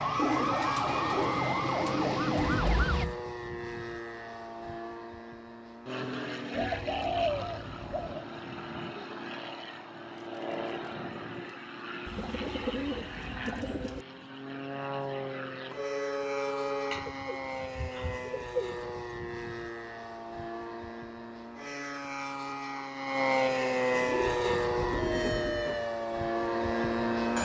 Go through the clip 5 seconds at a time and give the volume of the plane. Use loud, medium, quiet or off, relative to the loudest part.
medium, medium, medium, medium, loud, loud.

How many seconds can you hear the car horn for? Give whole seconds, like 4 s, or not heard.
2 s.